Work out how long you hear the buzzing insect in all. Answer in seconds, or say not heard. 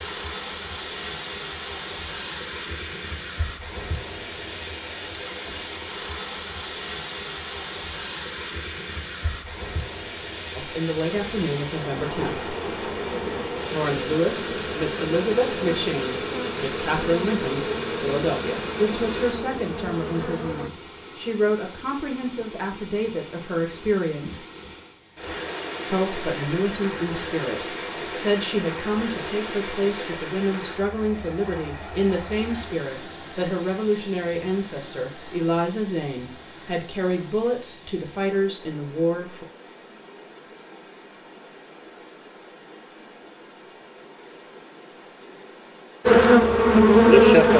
11 s.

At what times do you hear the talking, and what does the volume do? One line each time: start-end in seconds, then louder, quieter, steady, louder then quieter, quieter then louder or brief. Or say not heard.
10.6-12.6 brief
13.7-24.4 steady
25.9-39.5 steady.